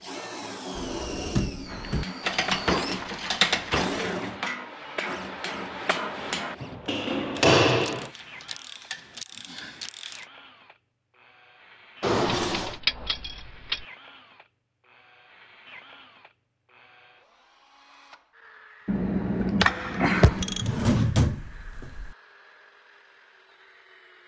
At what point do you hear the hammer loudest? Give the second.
8 s.